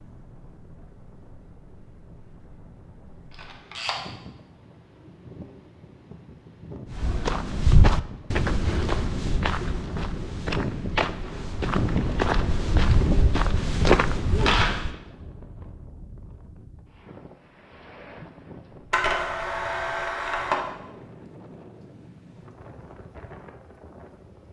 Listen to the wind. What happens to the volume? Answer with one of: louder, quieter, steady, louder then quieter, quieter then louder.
louder then quieter.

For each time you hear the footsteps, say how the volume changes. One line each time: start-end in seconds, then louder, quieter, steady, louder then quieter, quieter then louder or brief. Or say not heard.
6.9-14.9 quieter then louder.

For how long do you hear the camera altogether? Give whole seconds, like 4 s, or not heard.
3 s.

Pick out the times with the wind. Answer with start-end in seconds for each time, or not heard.
0.0-24.4.